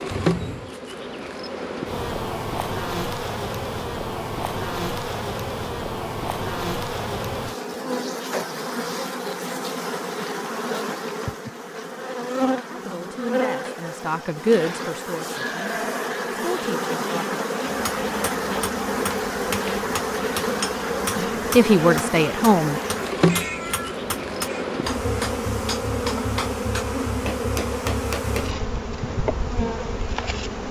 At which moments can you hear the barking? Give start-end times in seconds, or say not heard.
not heard.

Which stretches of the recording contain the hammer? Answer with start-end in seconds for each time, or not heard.
17.6-28.5.